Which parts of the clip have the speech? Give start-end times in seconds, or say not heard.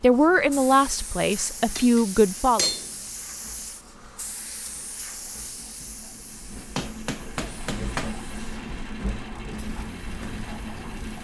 0.0-2.7.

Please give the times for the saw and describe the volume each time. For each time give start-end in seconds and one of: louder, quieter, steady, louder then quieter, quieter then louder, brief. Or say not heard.
not heard.